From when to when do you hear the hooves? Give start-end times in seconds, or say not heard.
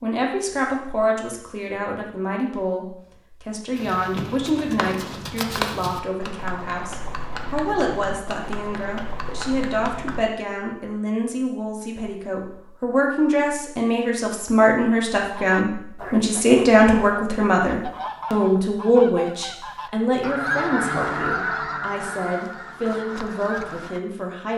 3.8-10.2.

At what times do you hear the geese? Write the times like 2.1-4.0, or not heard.
15.3-24.0.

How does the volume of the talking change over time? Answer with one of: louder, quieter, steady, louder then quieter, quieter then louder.
louder then quieter.